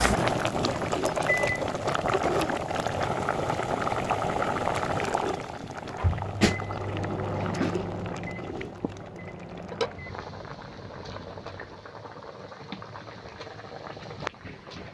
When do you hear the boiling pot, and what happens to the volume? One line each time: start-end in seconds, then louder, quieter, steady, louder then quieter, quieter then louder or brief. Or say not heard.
0.0-14.8 quieter.